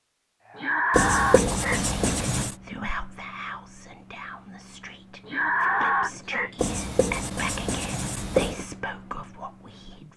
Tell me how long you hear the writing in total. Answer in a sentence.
The writing can be heard for 4 seconds in total.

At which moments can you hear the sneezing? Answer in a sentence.
You can hear the sneezing from 0.6 to 1.9 s and from 5.2 to 6.5 s.